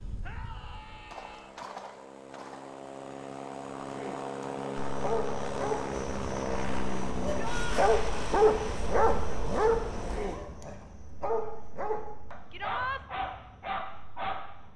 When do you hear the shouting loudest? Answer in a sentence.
The volume of the shouting peaks at 13 seconds.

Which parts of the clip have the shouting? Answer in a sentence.
You can hear the shouting from 0.2 to 1.6 s, from 7.3 to 7.8 s and from 12.5 to 13.0 s.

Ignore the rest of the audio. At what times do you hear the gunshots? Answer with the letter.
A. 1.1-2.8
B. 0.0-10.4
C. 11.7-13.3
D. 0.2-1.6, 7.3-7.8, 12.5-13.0
A.